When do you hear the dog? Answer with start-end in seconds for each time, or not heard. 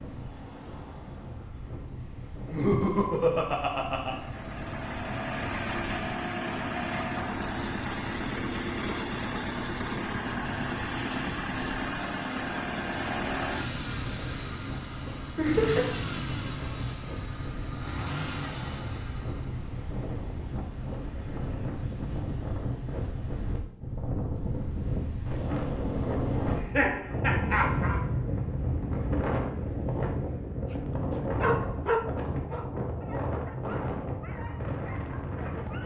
30.7-35.8.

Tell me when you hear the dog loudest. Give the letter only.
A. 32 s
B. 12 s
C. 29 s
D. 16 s
A.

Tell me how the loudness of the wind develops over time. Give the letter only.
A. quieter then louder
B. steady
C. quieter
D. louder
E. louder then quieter
D.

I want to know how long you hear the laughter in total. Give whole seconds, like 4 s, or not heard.
4 s.